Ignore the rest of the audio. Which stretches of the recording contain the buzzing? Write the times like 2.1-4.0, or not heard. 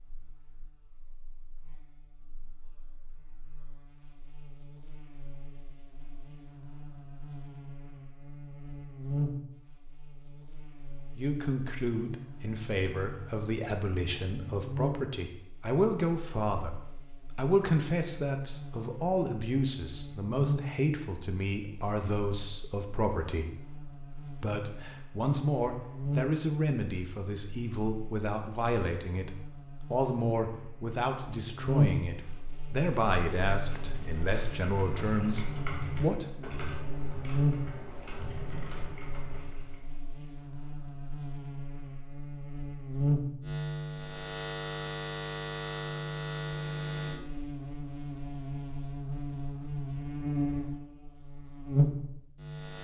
0.0-52.7.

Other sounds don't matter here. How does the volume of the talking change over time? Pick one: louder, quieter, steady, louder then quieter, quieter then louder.
steady.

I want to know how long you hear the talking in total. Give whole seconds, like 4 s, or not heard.
25 s.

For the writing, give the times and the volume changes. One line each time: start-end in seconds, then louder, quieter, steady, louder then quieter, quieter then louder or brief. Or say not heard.
not heard.